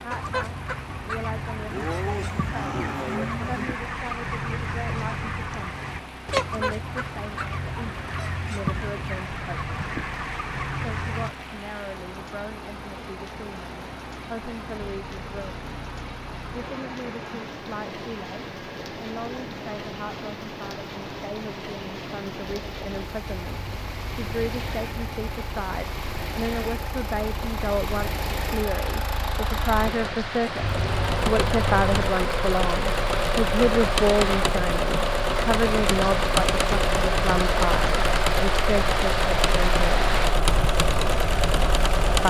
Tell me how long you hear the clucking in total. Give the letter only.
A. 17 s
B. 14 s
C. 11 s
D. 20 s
C.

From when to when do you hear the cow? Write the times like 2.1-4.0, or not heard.
1.6-3.6, 23.2-25.4, 30.6-32.1.